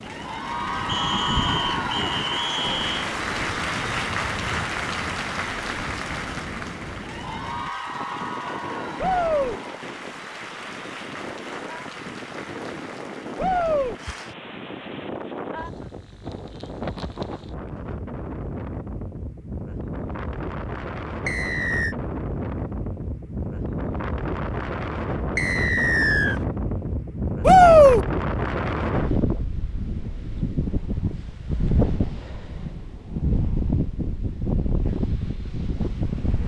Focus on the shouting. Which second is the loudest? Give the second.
28 s.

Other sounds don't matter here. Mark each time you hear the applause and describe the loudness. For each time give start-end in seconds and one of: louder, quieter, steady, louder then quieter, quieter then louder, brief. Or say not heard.
0.0-14.3 quieter.